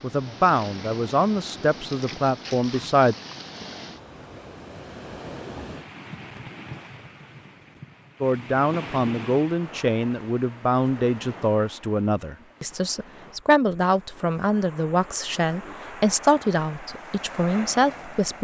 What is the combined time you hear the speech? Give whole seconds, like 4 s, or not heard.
13 s.